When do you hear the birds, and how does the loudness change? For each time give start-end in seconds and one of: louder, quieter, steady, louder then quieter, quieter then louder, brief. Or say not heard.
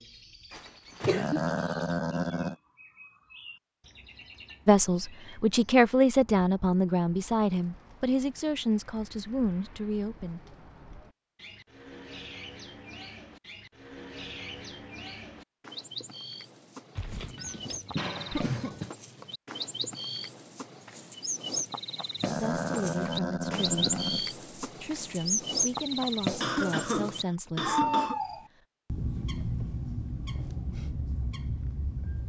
0.0-32.2 louder.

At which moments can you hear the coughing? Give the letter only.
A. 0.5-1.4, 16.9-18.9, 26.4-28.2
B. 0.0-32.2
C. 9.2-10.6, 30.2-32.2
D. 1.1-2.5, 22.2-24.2
A.